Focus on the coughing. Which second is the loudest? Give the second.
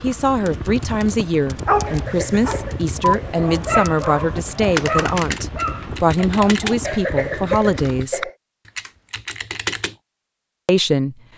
7 s.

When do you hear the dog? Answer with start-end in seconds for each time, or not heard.
1.6-6.8.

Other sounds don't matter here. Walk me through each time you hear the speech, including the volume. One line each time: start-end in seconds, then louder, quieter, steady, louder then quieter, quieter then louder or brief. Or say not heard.
0.0-8.2 steady
10.7-11.2 brief.